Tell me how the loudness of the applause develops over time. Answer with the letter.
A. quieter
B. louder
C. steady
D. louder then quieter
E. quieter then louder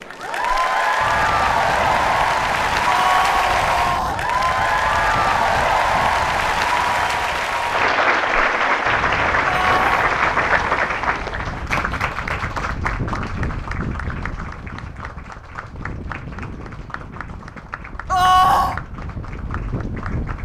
A.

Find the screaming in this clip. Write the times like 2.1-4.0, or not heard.
2.9-4.2, 9.4-10.0, 18.1-18.8.